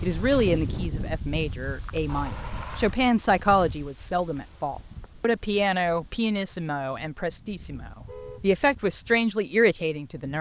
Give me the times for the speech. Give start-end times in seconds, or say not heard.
0.0-10.3.